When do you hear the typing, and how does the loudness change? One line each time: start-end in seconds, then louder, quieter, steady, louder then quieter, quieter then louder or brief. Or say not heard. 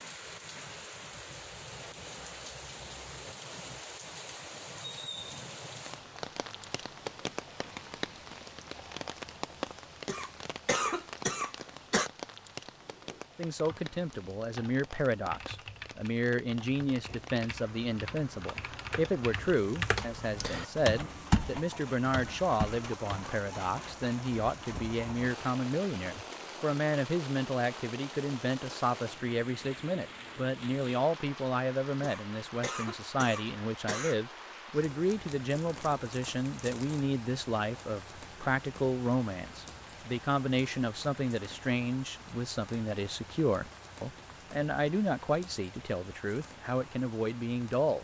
12.8-23.4 louder.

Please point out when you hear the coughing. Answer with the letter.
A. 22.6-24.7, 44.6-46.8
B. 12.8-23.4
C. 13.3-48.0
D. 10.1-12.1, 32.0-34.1
D.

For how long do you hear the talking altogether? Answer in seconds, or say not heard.
35 s.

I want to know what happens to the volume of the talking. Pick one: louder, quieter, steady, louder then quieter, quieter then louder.
steady.